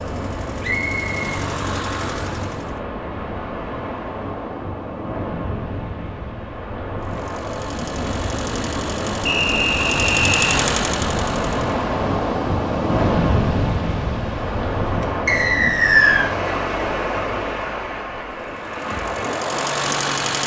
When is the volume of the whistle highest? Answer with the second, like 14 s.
16 s.